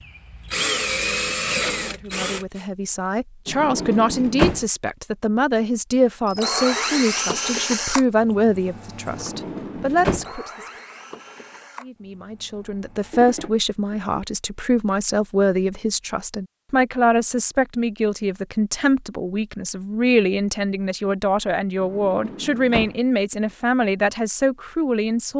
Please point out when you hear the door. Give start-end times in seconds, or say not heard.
3.5-4.7, 9.1-10.3, 21.8-22.9.